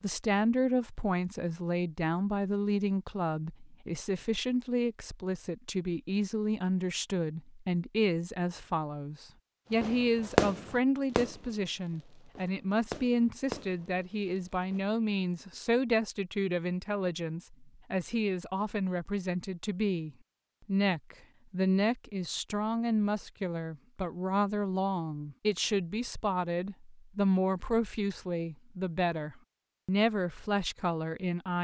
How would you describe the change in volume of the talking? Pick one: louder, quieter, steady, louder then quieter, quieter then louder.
steady.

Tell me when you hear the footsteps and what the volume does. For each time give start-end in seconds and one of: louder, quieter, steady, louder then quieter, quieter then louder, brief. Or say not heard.
not heard.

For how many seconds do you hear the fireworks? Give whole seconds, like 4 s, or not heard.
5 s.